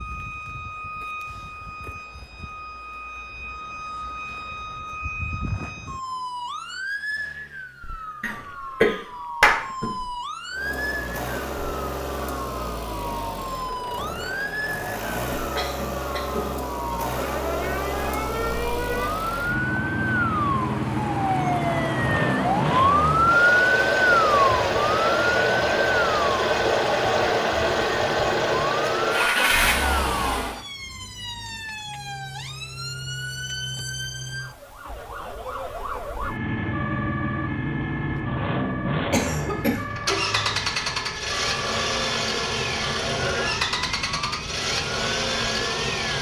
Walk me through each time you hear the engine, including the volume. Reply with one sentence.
The engine can be heard from 10.5 to 30.6 s, getting louder; and from 36.2 to 46.1 s, at a steady volume.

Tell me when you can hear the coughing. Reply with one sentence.
You can hear the coughing from 8.2 to 10.1 s, from 15.6 to 16.6 s and from 39.1 to 39.9 s.